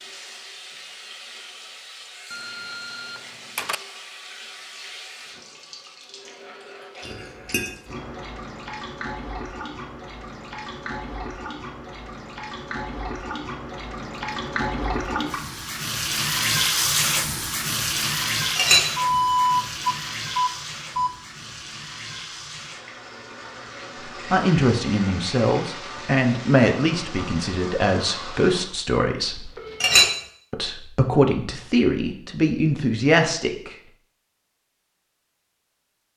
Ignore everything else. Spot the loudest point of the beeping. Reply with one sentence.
The volume of the beeping peaks at 19 seconds.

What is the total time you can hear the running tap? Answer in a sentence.
The running tap can be heard for 29 seconds in total.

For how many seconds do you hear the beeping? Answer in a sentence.
You can hear the beeping for 5 seconds altogether.